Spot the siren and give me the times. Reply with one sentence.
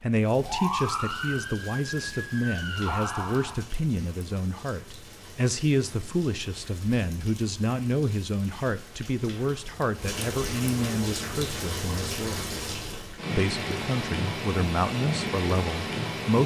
You can hear the siren from 0.0 to 3.6 s.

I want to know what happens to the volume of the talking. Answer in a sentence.
The volume of the talking stays about the same.